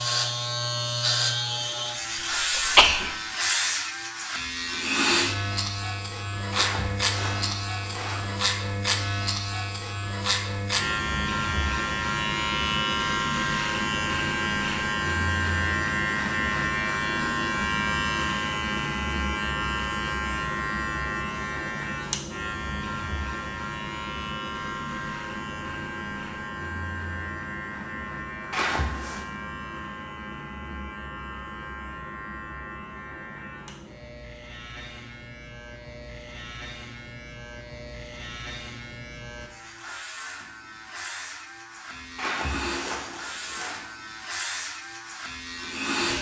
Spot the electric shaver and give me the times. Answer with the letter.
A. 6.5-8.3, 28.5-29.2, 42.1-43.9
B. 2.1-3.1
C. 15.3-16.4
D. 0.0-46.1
D.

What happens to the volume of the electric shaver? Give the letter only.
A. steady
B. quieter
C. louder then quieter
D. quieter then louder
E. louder
B.